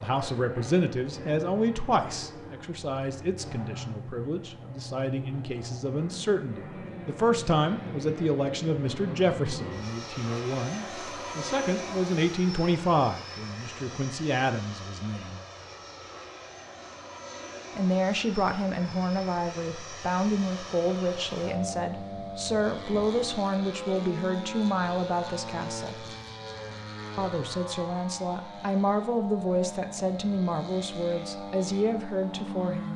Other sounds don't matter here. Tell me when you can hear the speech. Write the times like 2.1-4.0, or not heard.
0.0-15.4, 17.8-26.1, 27.1-32.9.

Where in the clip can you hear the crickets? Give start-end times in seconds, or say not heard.
not heard.